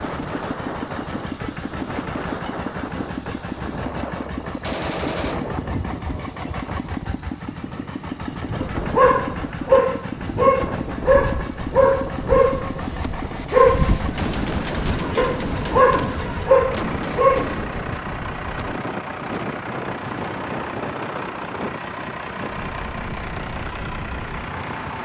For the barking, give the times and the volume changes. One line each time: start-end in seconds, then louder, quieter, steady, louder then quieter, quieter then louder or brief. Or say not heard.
8.8-17.6 quieter then louder.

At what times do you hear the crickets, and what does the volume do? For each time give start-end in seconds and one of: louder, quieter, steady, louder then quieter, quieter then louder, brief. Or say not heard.
not heard.